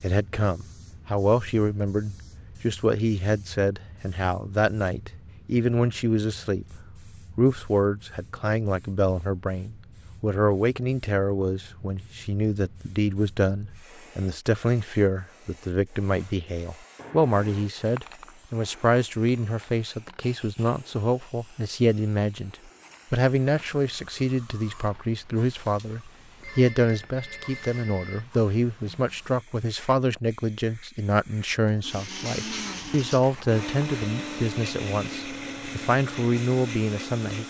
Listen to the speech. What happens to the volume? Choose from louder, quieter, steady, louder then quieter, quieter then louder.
steady.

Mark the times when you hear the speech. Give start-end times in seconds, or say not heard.
0.0-37.4.